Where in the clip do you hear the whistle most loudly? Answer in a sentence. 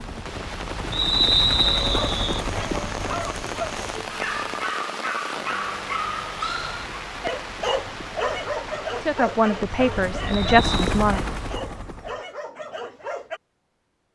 The loudest moment of the whistle is at 1 second.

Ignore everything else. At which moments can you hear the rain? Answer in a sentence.
The rain can be heard from 0.0 to 11.6 s.